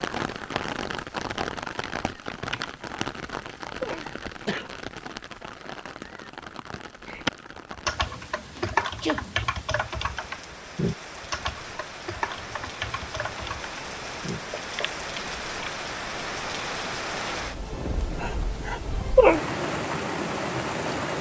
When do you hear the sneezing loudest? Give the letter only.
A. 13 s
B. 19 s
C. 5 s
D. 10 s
B.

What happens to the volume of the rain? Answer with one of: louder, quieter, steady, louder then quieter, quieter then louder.
quieter then louder.